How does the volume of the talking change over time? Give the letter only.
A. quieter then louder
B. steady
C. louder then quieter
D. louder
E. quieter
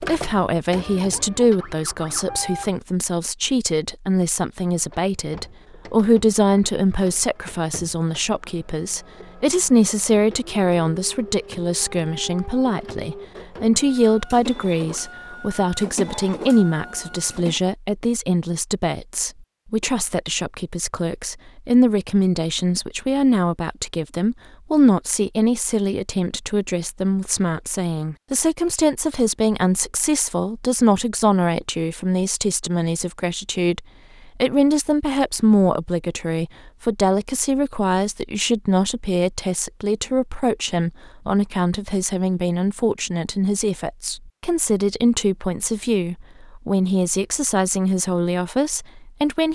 B.